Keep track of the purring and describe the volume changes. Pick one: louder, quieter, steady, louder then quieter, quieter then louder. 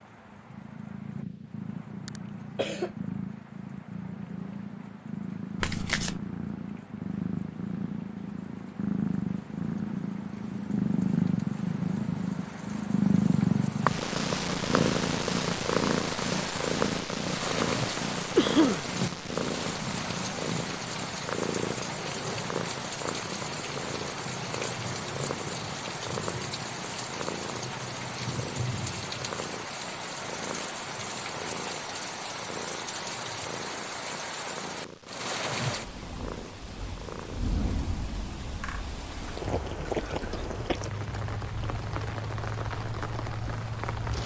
louder then quieter.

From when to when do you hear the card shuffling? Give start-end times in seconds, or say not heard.
5.6-6.2.